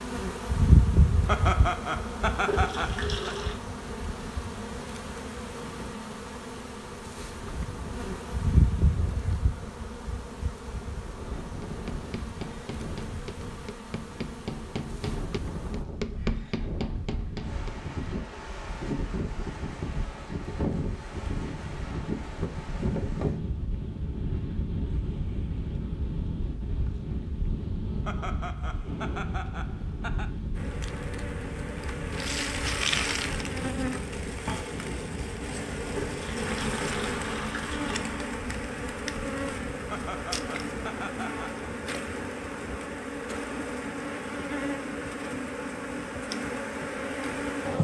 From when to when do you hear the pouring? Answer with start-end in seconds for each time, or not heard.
2.5-3.5, 36.0-38.0.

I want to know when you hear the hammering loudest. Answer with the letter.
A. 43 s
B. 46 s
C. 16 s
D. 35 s
C.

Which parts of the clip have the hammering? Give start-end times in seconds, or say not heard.
11.6-17.8.